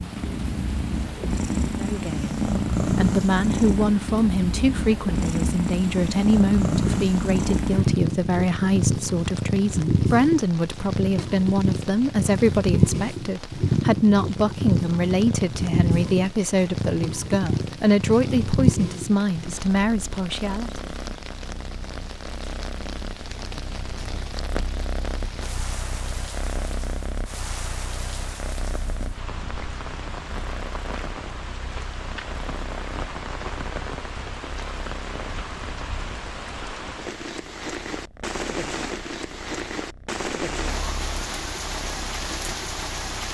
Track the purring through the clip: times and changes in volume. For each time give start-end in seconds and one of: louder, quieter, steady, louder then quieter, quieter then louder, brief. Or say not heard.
0.0-43.2 quieter.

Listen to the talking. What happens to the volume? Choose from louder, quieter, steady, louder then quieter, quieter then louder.
steady.